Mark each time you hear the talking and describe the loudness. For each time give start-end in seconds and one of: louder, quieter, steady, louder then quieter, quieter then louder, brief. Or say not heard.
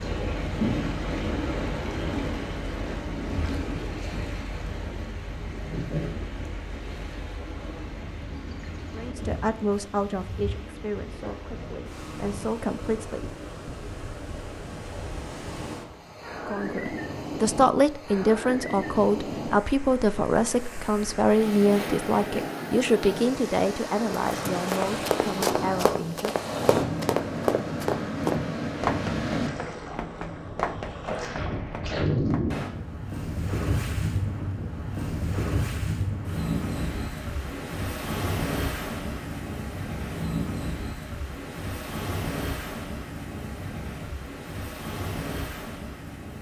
8.9-13.3 quieter then louder
16.4-26.4 quieter.